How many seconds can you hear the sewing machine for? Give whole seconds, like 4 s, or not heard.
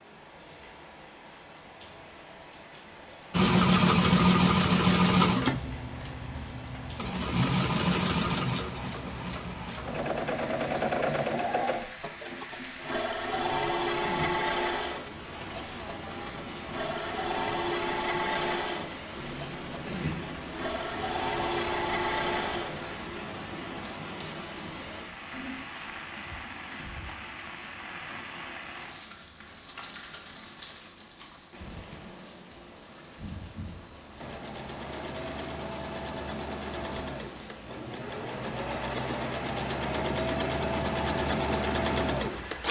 28 s.